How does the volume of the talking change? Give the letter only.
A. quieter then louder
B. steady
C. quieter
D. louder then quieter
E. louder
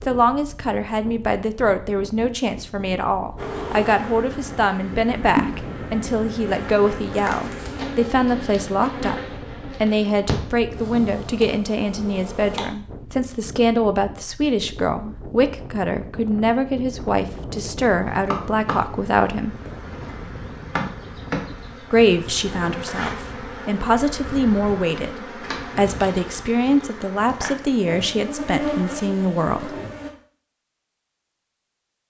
B.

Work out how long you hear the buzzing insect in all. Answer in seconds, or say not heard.
21 s.